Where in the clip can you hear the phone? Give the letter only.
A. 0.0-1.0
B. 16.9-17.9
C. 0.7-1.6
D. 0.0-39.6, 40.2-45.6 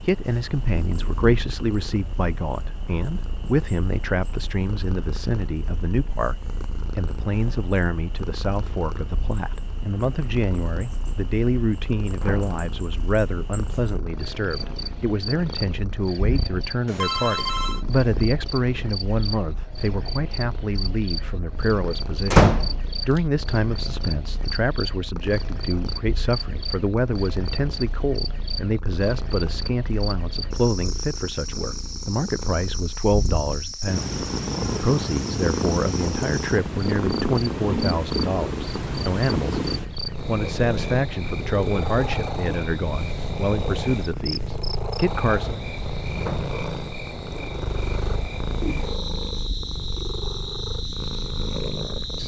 B.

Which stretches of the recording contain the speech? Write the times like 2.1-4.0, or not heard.
0.0-39.6, 40.2-45.6.